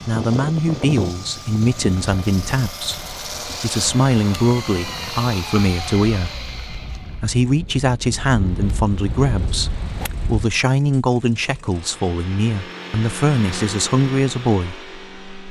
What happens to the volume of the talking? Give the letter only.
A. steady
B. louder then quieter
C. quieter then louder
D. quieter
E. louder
A.